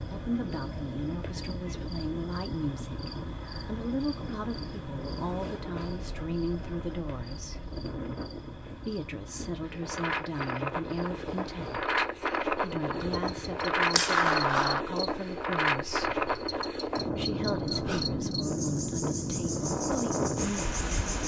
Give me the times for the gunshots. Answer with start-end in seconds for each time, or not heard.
13.0-14.8.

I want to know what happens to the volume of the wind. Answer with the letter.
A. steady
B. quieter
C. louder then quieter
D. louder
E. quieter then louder
D.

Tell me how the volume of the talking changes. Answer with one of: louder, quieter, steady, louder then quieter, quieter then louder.
steady.